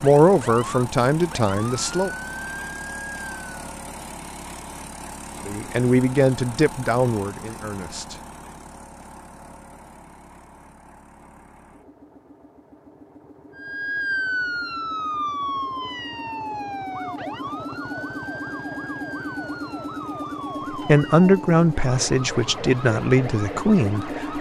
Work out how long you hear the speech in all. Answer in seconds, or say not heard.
8 s.